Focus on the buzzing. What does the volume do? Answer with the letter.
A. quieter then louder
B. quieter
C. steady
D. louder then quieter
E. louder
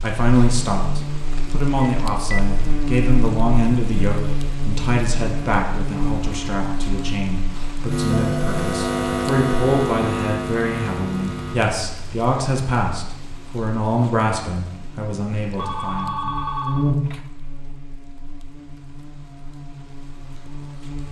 A.